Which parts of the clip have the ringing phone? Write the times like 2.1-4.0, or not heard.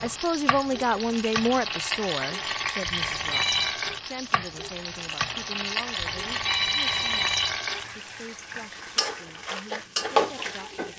2.9-3.8, 6.0-7.6.